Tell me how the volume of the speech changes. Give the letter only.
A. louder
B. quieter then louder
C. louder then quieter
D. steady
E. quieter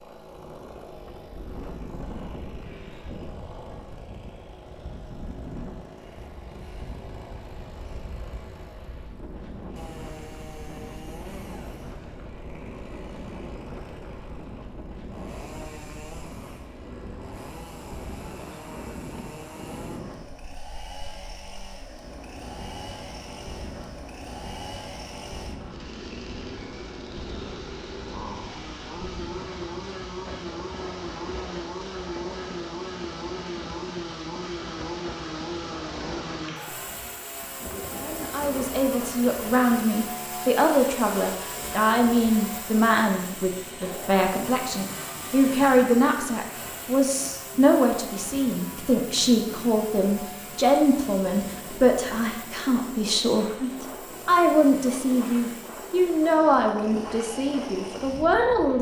D.